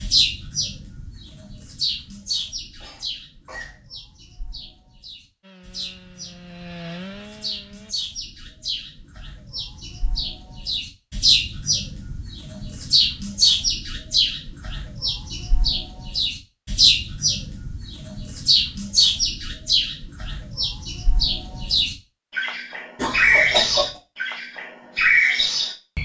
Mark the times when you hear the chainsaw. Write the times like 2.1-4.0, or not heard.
5.4-8.0.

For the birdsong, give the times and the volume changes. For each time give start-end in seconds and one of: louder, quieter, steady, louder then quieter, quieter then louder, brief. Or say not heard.
0.0-26.0 louder.